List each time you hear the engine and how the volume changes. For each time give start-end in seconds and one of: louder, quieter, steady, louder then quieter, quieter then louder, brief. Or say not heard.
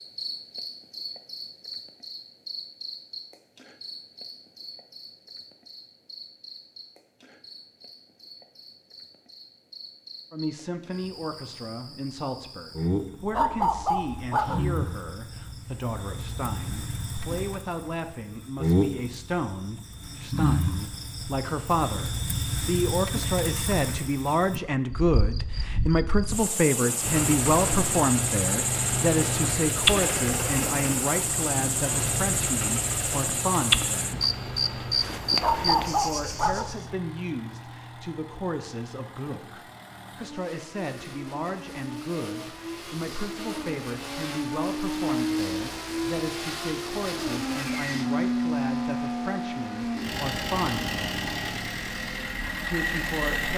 27.0-53.5 quieter then louder.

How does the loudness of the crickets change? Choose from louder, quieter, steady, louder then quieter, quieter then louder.
louder.